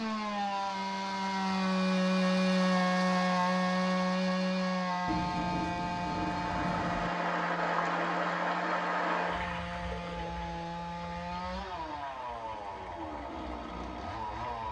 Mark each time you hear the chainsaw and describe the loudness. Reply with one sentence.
You can hear the chainsaw from 0.0 to 14.6 s, getting quieter.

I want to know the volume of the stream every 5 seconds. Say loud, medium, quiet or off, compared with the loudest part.
off, loud, quiet.